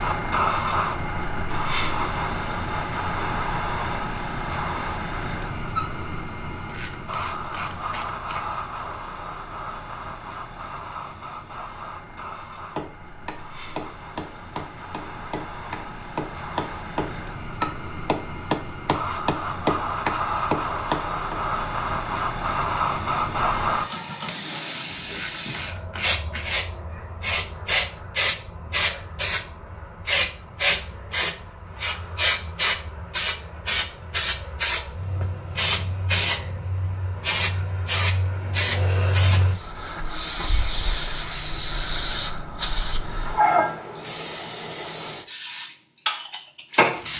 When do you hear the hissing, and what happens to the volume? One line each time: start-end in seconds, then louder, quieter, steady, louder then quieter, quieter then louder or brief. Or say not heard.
0.0-47.1 quieter then louder.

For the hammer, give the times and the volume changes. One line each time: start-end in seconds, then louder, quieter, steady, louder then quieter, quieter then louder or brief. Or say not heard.
12.8-21.4 louder.